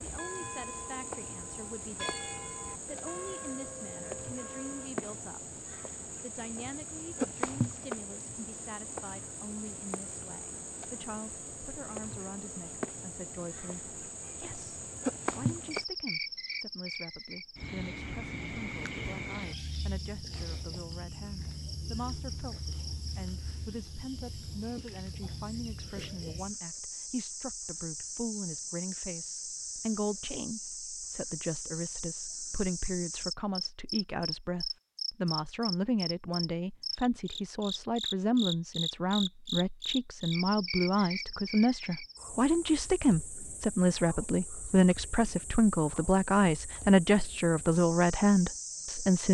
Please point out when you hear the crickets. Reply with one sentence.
You can hear the crickets from 0.0 to 49.2 s.